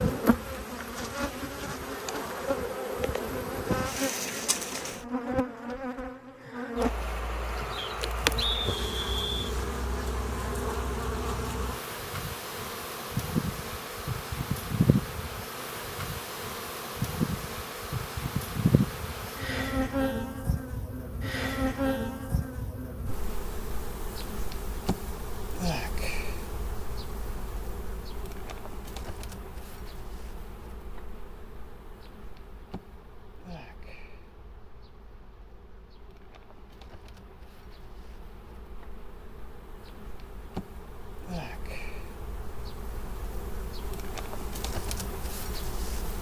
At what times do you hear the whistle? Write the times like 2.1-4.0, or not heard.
7.8-9.6.